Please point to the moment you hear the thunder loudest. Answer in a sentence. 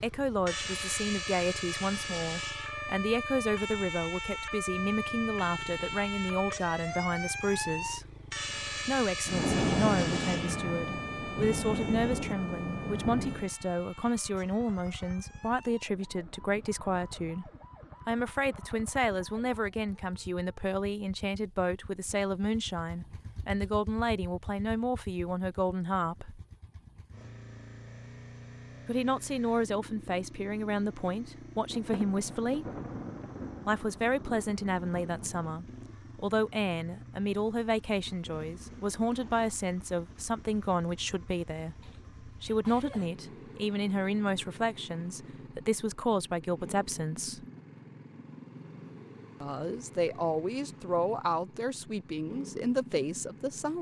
The loudest moment of the thunder is at 10 seconds.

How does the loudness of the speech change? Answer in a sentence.
The volume of the speech stays about the same.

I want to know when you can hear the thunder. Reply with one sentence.
You can hear the thunder from 9.2 to 13.5 s and from 31.7 to 35.5 s.